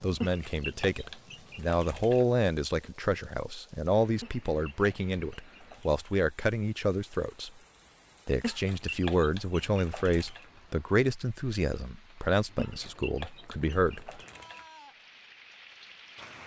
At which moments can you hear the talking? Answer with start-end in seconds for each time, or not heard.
0.0-7.5, 8.2-14.2.